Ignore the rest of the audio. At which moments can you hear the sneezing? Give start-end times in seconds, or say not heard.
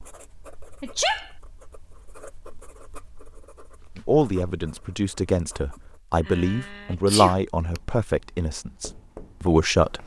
0.8-1.3, 6.2-7.8.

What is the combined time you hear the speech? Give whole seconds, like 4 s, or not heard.
6 s.